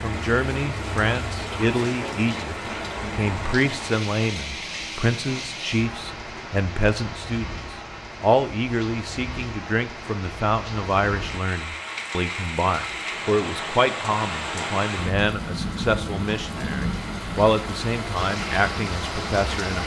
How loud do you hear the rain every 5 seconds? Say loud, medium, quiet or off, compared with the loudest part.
loud, medium, loud, loud.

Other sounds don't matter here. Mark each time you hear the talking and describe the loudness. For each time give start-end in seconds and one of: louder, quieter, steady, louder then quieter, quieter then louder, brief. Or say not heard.
0.0-19.8 steady.